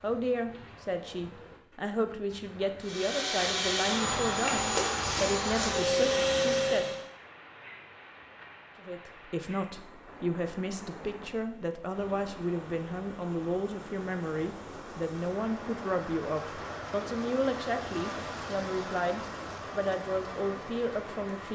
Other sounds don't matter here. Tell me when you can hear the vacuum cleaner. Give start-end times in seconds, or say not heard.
2.8-7.0.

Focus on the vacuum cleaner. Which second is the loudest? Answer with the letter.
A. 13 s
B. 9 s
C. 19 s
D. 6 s
D.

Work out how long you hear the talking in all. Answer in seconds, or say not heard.
20 s.